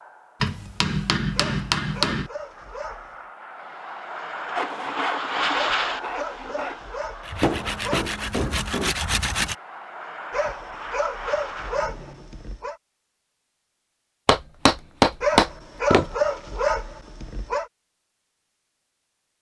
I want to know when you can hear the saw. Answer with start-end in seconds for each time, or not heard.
4.5-9.6.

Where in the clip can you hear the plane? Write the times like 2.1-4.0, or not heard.
0.0-12.3.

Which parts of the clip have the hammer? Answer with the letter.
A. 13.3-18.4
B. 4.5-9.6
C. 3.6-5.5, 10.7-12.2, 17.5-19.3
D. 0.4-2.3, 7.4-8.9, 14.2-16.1
D.